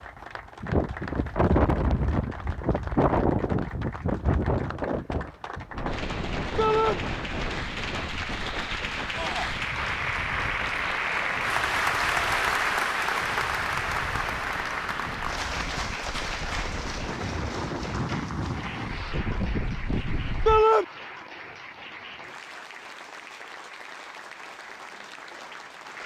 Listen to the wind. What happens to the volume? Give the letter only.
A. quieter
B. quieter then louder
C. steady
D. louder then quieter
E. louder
B.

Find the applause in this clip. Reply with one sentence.
You can hear the applause from 0.0 to 26.0 s.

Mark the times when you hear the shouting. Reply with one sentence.
The shouting can be heard from 6.5 to 7.0 s, from 9.2 to 9.6 s and from 20.4 to 20.9 s.